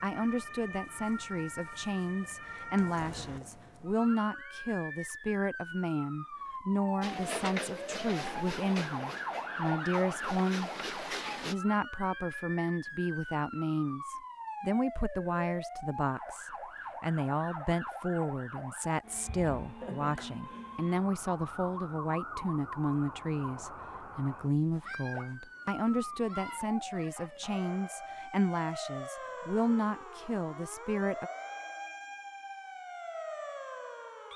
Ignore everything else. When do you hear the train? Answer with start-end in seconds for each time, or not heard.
7.0-11.6.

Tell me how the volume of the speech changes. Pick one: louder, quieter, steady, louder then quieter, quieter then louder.
steady.